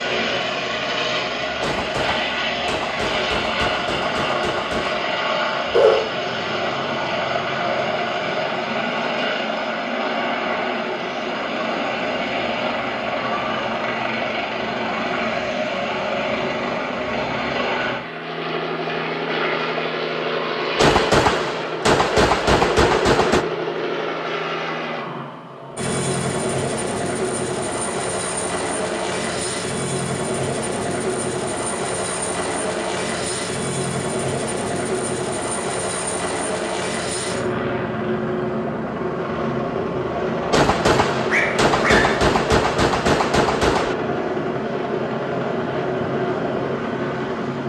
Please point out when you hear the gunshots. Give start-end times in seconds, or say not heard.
1.6-5.0, 20.8-23.4, 40.5-44.0.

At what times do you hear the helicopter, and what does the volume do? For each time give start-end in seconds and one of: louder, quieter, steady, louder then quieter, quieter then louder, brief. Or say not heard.
0.0-47.6 steady.